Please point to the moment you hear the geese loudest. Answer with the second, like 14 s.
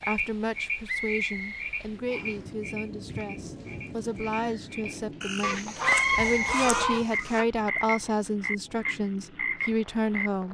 7 s.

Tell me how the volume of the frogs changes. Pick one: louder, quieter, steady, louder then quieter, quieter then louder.
quieter then louder.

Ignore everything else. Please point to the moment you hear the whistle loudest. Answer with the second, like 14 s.
6 s.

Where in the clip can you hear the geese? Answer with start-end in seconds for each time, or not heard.
5.4-7.5.